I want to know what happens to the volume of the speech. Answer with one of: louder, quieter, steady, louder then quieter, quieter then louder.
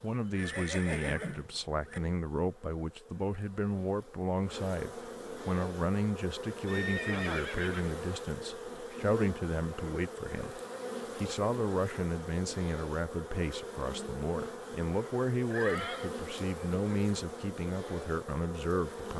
steady.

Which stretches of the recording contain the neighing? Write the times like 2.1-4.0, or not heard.
0.3-2.0, 6.7-7.9, 15.5-16.1.